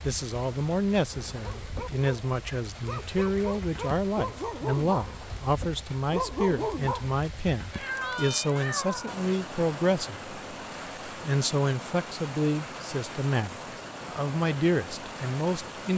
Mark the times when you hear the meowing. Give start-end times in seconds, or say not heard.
7.7-9.2.